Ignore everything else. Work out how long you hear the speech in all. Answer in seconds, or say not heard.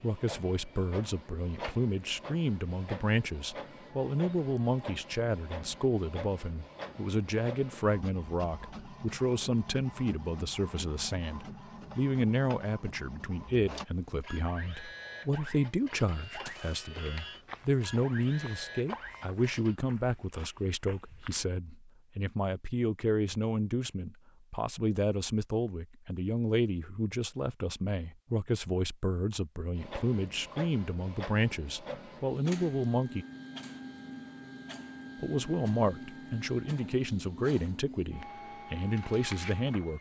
38 s.